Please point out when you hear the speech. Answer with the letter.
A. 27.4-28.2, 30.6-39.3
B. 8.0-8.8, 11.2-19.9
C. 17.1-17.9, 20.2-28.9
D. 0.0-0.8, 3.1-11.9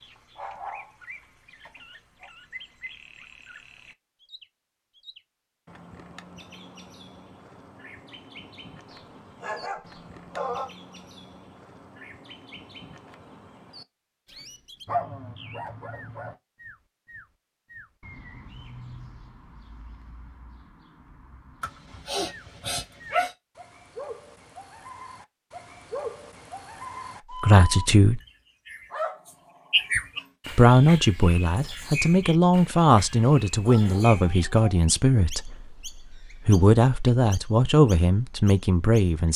A.